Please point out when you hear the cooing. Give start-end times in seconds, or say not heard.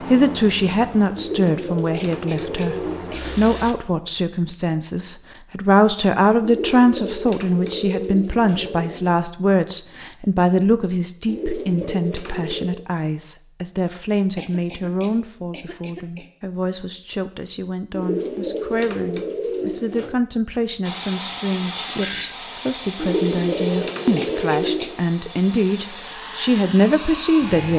1.1-3.4, 6.4-9.2, 11.2-12.8, 17.9-20.2, 22.9-25.1.